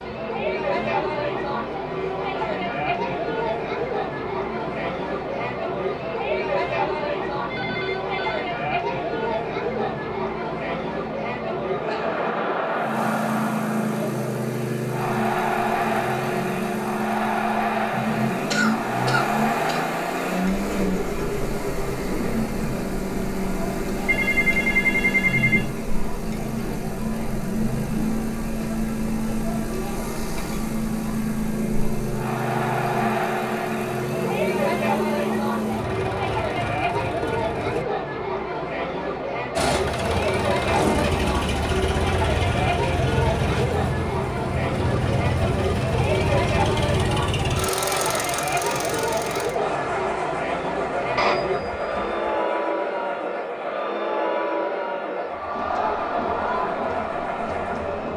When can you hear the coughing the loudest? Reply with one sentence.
The volume of the coughing peaks at 19 seconds.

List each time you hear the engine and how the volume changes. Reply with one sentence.
The engine can be heard from 0.0 to 37.9 s, getting louder; and from 39.5 to 58.0 s, getting quieter.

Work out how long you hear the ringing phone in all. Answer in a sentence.
The ringing phone can be heard for 4 seconds in total.